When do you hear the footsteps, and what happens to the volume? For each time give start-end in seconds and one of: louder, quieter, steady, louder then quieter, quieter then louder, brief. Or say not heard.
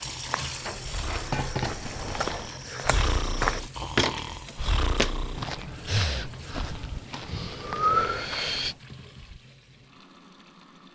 0.1-8.8 louder then quieter.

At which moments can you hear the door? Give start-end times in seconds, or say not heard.
0.6-2.5.